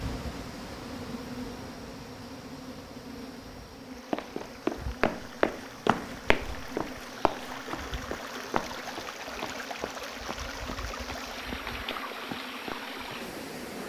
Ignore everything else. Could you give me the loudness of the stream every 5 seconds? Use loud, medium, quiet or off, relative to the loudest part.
medium, loud, loud.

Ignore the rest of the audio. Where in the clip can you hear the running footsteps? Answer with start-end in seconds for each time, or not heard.
4.1-13.3.